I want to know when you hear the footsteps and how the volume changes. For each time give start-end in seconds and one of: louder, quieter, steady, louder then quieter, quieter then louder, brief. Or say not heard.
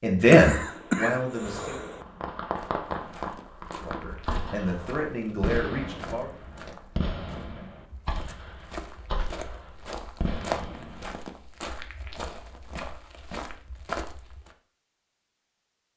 2.5-14.6 louder.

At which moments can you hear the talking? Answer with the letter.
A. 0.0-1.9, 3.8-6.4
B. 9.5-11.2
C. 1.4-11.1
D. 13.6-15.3
A.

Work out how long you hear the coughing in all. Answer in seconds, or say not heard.
2 s.